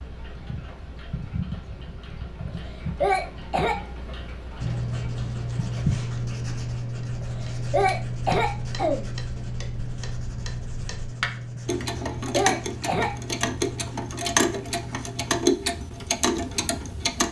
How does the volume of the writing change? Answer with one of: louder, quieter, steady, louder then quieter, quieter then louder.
quieter.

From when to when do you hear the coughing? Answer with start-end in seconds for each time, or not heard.
2.5-3.8, 7.2-9.1, 11.8-13.1.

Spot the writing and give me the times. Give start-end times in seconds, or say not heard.
4.5-15.6.